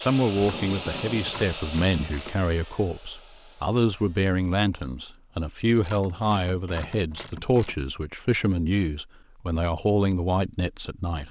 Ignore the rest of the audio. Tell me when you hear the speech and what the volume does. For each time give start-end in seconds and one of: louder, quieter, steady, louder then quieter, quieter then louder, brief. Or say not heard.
0.0-11.2 steady.